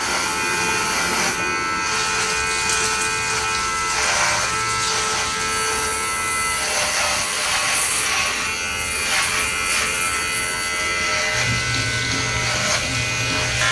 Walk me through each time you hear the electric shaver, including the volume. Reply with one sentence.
You can hear the electric shaver from 0.0 to 13.6 s, at a steady volume.